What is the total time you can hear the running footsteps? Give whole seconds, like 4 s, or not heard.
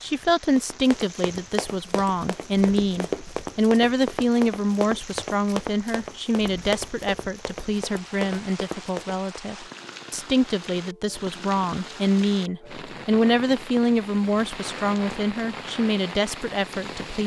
9 s.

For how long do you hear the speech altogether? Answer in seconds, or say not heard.
17 s.